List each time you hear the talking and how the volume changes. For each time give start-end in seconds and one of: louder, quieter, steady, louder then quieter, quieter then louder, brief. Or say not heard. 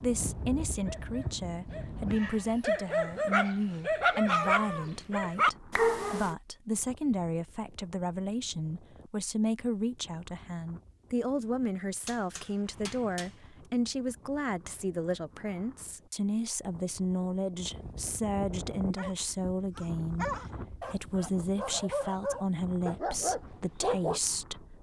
0.0-24.7 steady.